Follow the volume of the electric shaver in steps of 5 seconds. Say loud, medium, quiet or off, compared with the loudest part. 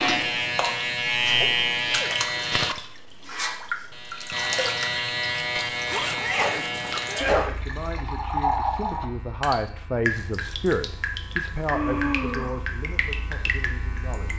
loud, medium, quiet.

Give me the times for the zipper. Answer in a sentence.
The zipper can be heard from 5.8 to 7.0 s.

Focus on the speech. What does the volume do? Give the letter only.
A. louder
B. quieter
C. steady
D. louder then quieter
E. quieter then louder
D.